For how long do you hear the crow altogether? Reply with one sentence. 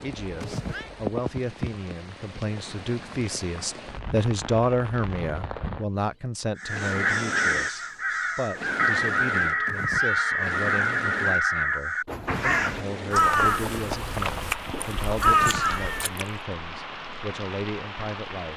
You can hear the crow for 10 seconds altogether.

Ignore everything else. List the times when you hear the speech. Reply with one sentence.
The speech can be heard from 0.0 to 18.5 s.